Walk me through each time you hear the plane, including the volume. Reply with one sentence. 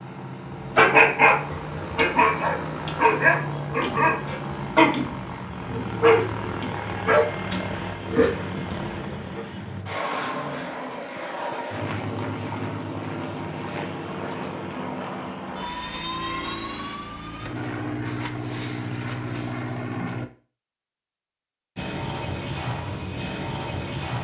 You can hear the plane from 0.0 to 20.3 s, at a steady volume; and briefly from 21.8 to 24.1 s.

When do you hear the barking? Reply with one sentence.
You can hear the barking from 0.8 to 9.4 s.